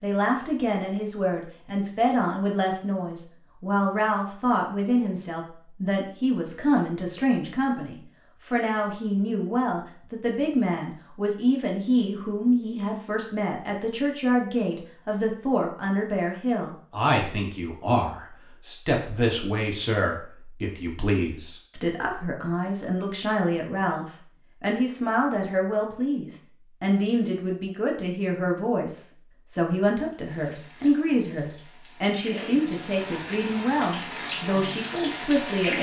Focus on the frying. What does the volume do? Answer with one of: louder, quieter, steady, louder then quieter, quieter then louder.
louder.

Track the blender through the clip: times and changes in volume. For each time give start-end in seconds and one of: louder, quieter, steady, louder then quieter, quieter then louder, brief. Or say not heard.
not heard.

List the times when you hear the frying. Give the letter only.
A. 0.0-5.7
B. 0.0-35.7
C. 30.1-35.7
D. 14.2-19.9
C.